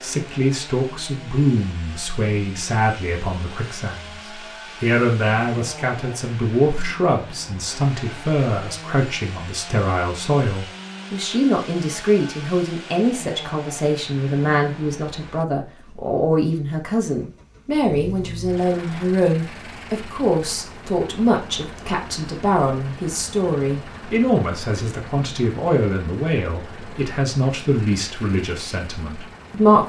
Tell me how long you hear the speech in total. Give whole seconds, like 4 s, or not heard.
29 s.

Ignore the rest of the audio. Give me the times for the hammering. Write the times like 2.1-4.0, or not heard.
not heard.